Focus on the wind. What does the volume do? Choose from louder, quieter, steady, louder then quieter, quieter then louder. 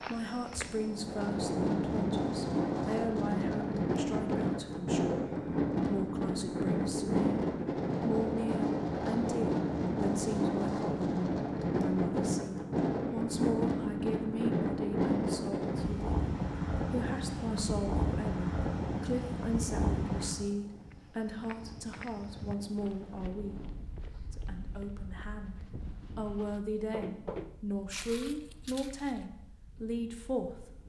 quieter.